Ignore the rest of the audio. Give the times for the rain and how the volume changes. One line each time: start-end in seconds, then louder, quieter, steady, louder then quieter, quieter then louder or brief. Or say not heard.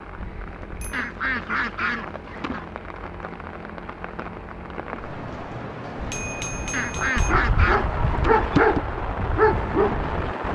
0.0-10.5 louder.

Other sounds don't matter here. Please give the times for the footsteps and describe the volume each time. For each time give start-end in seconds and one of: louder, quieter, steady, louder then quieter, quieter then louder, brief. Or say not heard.
not heard.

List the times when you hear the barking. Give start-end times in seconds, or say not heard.
6.8-10.5.